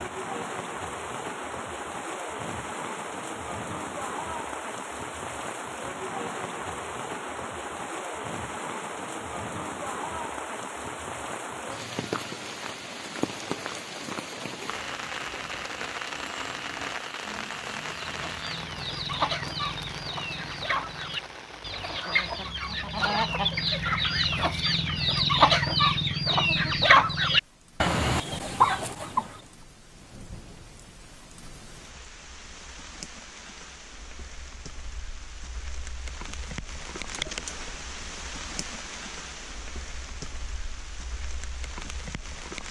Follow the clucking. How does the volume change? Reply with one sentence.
The loudness of the clucking goes up.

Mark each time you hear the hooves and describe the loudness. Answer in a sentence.
The hooves can't be heard in this clip.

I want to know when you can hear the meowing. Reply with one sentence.
The meowing can't be heard in this clip.